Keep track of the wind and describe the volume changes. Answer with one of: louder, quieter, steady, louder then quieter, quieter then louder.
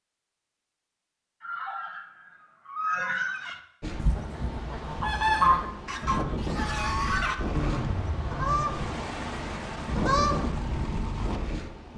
louder.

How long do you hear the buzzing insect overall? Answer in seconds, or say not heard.
not heard.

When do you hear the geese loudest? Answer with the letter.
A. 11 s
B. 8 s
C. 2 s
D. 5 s
D.